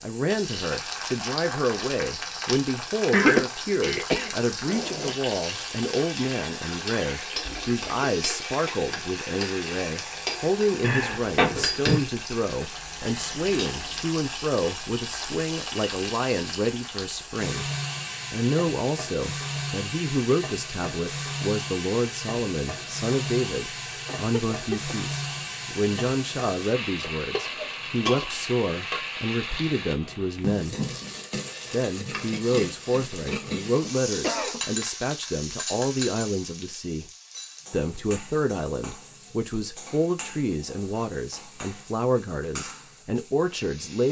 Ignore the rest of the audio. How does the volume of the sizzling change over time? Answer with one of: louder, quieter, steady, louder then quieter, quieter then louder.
quieter.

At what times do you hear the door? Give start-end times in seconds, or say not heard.
10.8-12.0.